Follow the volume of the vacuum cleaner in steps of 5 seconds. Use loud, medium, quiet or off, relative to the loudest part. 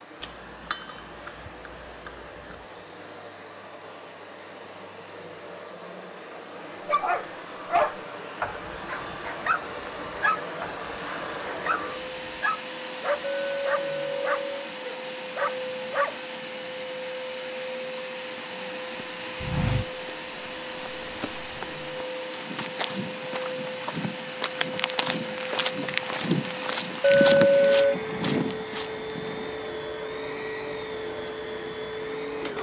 medium, medium, loud, loud, loud, loud, loud.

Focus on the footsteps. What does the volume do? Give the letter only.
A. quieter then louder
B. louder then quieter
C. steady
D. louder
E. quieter
D.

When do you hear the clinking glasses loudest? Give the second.
27 s.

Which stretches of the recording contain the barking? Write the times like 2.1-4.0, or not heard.
6.8-16.2.